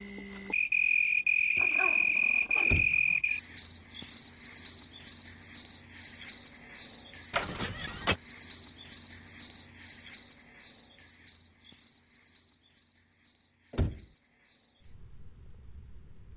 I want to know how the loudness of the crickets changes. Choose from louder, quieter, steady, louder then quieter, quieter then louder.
quieter.